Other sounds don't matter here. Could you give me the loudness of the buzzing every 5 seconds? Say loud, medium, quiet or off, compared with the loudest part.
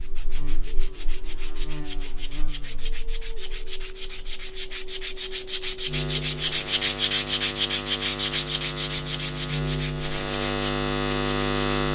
quiet, medium, loud.